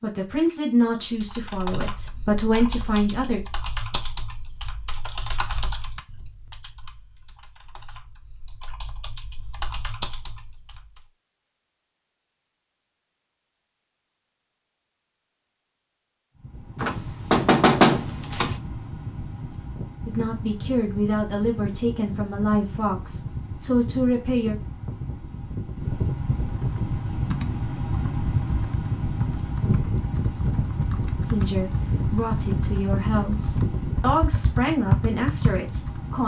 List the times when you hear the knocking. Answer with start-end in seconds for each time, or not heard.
16.8-18.6.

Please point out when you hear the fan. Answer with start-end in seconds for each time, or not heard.
16.4-36.2.